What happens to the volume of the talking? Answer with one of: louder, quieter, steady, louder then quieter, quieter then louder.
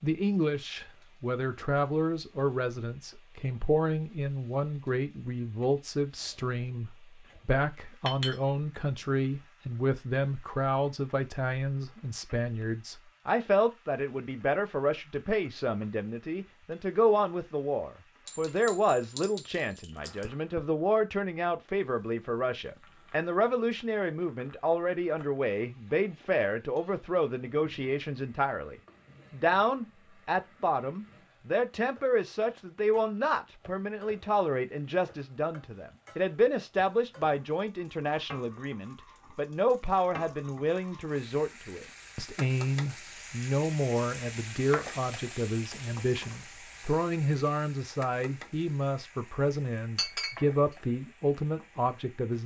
steady.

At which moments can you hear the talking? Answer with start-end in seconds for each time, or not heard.
0.0-52.4.